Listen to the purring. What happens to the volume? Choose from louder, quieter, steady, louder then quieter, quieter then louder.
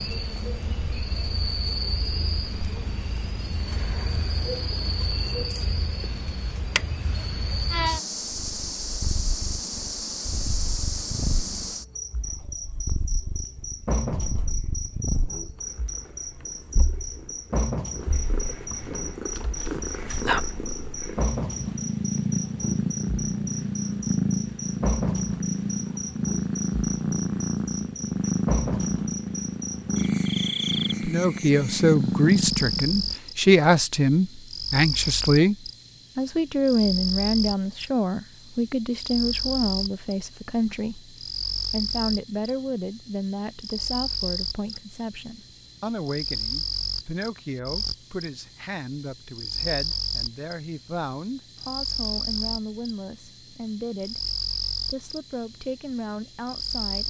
louder.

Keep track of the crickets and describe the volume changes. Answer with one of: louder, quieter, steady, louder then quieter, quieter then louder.
steady.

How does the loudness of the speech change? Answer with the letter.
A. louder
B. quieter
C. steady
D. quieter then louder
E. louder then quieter
B.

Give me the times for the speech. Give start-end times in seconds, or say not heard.
31.1-35.5, 36.1-57.0.